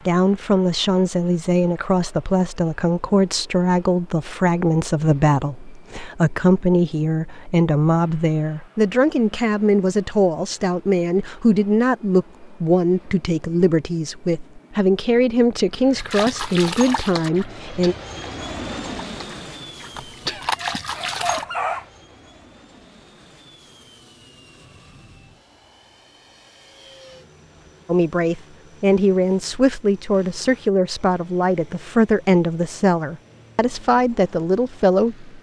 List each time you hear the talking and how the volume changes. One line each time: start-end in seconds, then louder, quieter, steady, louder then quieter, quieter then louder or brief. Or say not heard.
0.1-17.9 steady
27.9-35.3 steady.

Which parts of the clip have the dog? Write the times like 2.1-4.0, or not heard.
19.9-21.9.